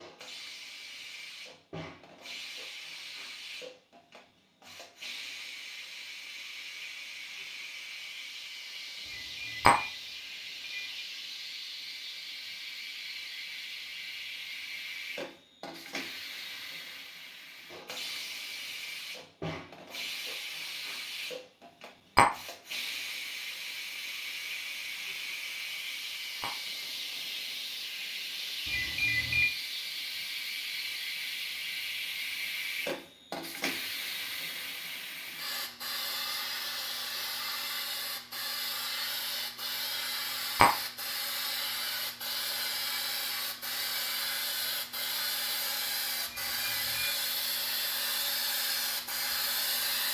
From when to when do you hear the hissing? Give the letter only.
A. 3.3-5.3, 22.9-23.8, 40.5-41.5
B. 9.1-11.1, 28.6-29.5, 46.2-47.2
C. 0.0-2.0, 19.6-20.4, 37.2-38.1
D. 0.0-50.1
D.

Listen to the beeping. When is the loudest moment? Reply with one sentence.
The volume of the beeping peaks at 29 seconds.